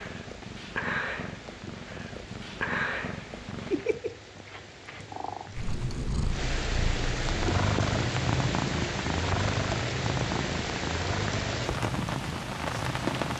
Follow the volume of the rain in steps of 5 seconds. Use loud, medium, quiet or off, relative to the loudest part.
quiet, loud, loud.